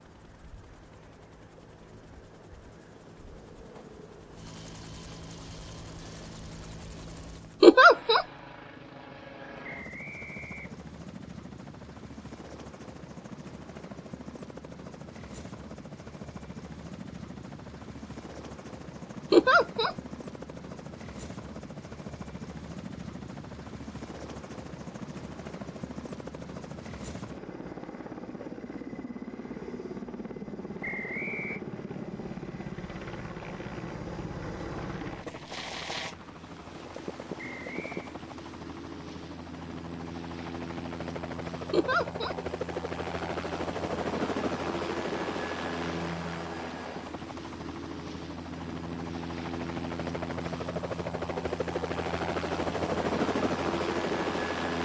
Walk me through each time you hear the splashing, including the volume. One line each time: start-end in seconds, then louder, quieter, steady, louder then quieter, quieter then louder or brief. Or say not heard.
not heard.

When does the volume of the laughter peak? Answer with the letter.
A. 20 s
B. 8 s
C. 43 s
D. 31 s
B.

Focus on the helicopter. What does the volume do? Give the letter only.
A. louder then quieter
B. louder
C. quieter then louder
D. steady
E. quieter
B.